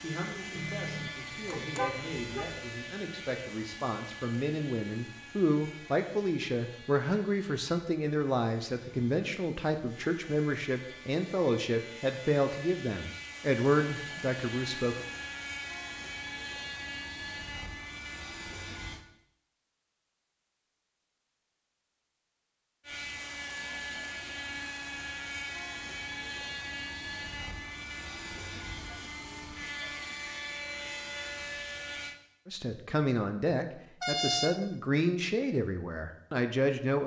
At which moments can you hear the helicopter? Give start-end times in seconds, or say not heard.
0.0-19.1, 22.8-32.1.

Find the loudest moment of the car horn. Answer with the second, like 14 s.
34 s.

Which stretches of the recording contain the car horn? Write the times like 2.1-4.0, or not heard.
0.6-2.6, 34.0-34.6.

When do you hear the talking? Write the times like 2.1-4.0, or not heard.
0.0-15.1, 32.5-37.0.